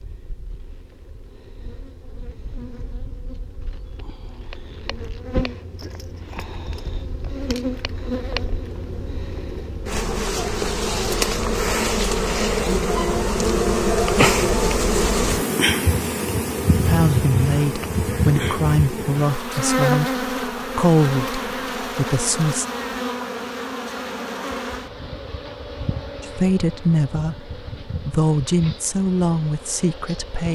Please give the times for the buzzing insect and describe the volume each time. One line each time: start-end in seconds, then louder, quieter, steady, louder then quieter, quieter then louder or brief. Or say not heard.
0.0-30.4 louder then quieter.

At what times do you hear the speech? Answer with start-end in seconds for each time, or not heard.
16.7-22.6, 26.2-30.4.